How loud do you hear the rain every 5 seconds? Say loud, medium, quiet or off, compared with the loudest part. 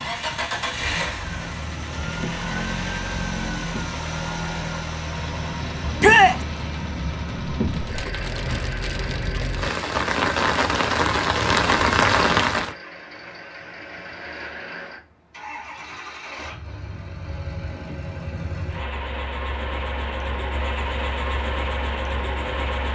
quiet, medium, loud, off, off.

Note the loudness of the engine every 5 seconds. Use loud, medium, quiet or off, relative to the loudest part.
loud, medium, medium, medium, loud.